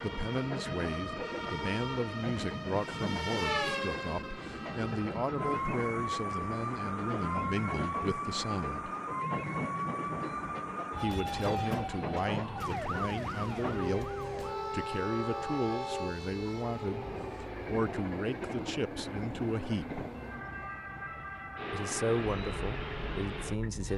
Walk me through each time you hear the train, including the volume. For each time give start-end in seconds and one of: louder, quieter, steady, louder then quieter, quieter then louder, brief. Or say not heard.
0.0-23.9 steady.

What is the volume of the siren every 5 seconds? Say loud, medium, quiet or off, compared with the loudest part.
loud, loud, loud, medium, medium.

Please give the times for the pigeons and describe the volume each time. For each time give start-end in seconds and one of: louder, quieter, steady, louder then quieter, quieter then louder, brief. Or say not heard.
not heard.